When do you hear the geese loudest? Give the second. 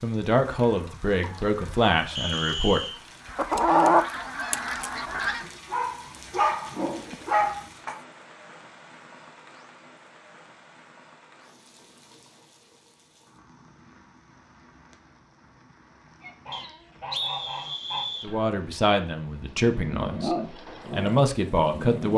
4 s.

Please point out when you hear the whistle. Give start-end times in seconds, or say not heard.
2.1-3.0, 16.5-18.3.